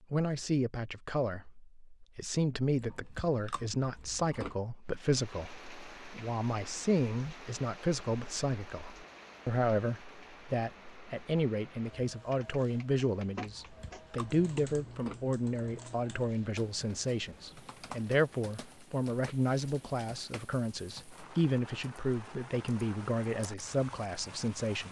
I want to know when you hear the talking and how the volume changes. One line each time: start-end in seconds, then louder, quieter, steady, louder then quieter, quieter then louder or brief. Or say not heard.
0.1-24.8 steady.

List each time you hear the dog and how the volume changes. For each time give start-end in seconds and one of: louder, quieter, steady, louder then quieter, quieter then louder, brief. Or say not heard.
not heard.